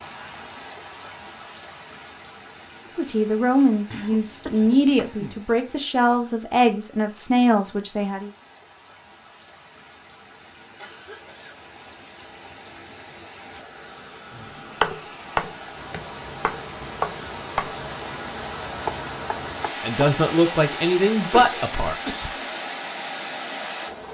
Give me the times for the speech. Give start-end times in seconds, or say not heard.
3.0-8.3, 19.8-22.0.